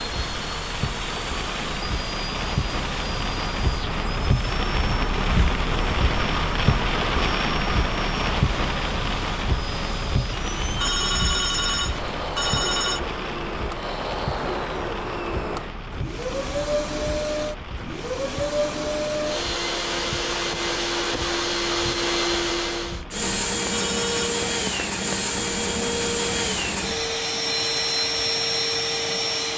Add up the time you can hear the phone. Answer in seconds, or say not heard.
3 s.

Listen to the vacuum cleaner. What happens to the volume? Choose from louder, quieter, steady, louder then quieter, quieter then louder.
louder.